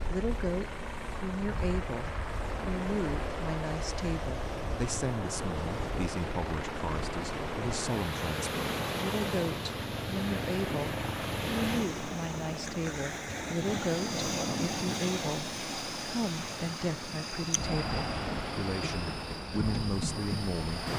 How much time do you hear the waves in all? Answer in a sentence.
The waves can be heard for 21 seconds in total.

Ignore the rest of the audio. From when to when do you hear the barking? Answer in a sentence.
The barking can't be heard in this clip.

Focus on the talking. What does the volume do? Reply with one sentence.
The loudness of the talking stays about the same.